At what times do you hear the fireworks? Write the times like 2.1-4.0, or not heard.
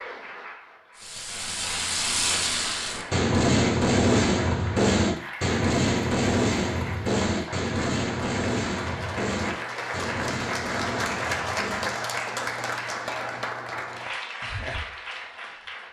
0.9-11.9.